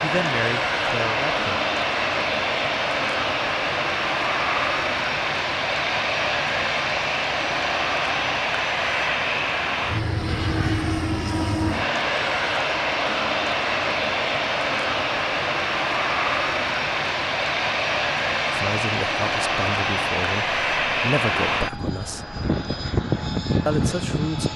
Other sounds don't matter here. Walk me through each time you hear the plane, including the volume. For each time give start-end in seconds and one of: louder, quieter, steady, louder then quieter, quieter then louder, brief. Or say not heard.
0.0-24.5 steady.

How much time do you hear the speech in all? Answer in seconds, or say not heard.
6 s.